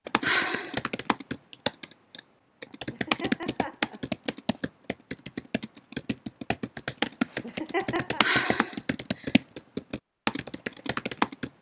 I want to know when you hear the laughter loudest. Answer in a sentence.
The volume of the laughter peaks at 8 seconds.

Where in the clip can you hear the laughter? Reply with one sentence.
You can hear the laughter from 2.9 to 4.0 s and from 7.4 to 8.2 s.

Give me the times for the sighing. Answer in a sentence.
The sighing can be heard from 0.2 to 0.8 s and from 8.2 to 9.3 s.